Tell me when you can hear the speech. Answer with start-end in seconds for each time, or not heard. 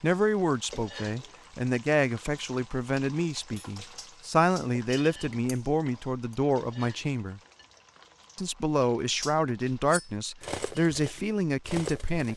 0.0-7.4, 8.3-12.3.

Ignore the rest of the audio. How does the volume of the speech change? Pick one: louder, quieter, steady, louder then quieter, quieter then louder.
steady.